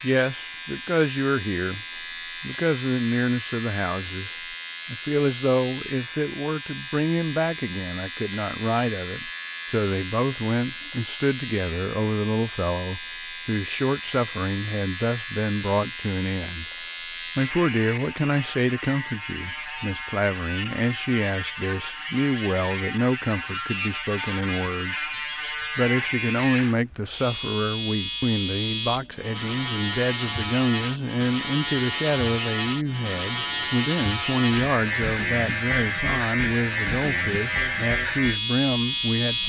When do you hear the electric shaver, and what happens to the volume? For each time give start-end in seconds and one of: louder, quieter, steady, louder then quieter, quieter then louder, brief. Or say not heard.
0.0-39.4 louder.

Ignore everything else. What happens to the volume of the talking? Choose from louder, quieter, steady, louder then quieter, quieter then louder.
steady.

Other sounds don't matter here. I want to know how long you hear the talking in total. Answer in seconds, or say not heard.
38 s.